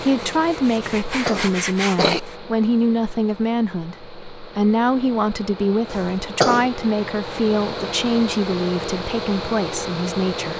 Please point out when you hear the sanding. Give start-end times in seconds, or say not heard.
0.0-2.4.